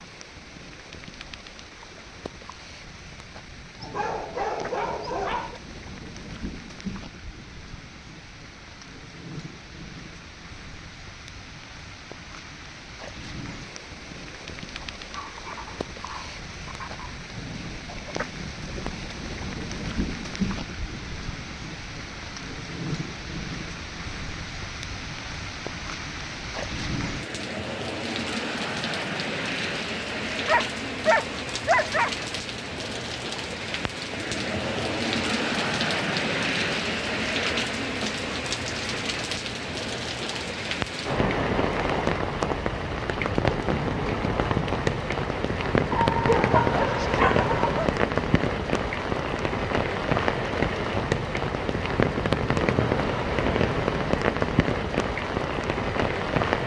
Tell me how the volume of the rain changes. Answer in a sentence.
The loudness of the rain goes up.